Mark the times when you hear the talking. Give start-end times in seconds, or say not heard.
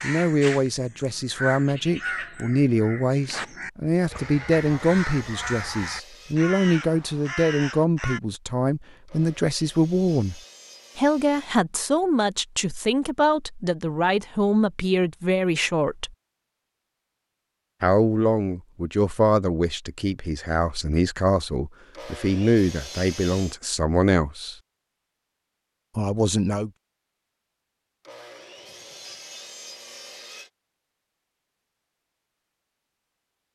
0.0-16.1, 17.8-24.6, 25.9-26.7.